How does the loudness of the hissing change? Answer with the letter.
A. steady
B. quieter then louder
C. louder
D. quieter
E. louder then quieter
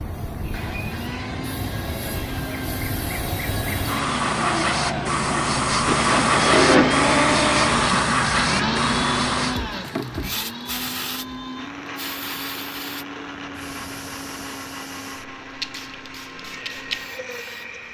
E.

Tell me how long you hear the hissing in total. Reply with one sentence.
The hissing can be heard for 18 seconds in total.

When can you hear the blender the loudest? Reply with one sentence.
The loudest moment of the blender is at 7 seconds.